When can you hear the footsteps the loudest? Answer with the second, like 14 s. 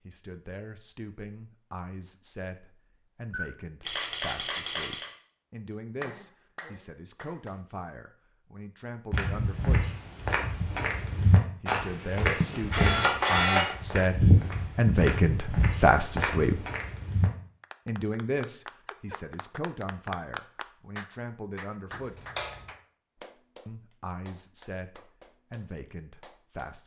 14 s.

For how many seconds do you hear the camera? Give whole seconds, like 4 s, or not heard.
4 s.